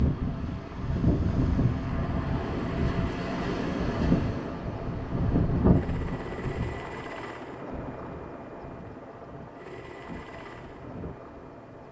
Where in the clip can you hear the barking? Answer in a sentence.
You can't hear the barking here.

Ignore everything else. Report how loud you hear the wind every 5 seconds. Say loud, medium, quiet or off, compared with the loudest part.
loud, loud, quiet.